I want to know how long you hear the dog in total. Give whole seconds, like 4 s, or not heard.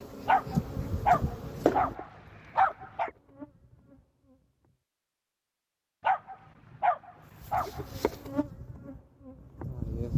5 s.